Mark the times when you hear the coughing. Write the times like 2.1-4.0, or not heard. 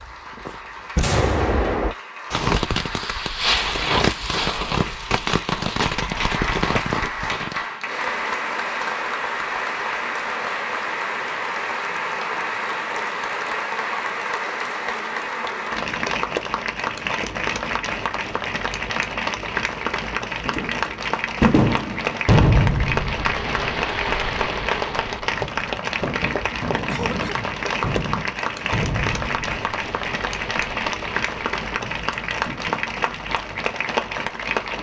26.9-27.6.